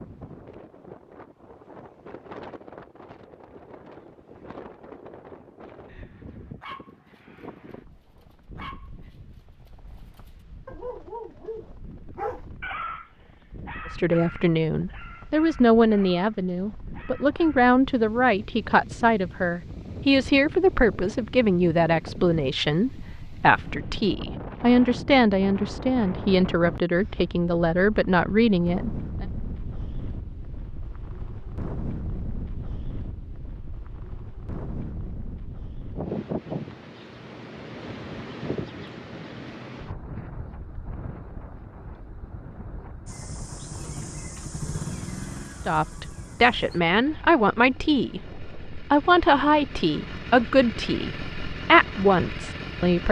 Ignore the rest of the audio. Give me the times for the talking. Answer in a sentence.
The talking can be heard from 13.9 to 29.2 s and from 45.6 to 53.0 s.